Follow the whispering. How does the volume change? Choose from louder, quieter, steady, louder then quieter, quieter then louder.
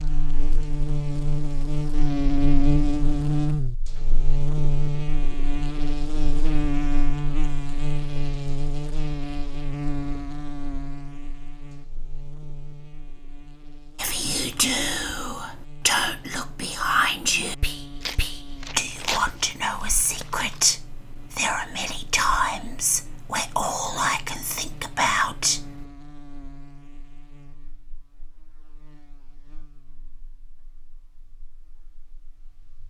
steady.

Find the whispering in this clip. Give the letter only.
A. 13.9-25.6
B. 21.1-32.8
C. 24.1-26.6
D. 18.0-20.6
A.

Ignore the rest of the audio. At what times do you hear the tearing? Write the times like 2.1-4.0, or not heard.
18.0-20.6.